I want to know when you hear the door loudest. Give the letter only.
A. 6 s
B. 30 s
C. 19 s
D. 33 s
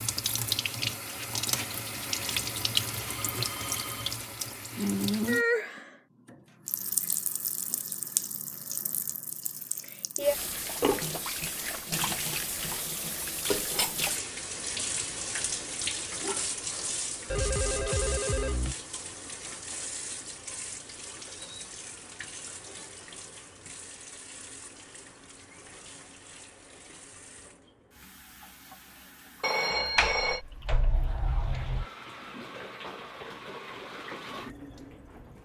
B.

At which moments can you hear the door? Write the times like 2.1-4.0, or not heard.
29.9-31.9.